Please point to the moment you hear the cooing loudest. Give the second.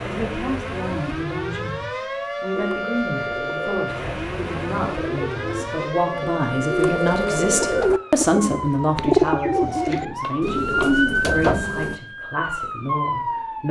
9 s.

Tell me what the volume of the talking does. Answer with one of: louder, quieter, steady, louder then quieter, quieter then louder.
louder then quieter.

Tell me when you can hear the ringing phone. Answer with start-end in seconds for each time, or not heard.
not heard.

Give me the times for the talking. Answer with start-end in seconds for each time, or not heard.
0.0-13.6.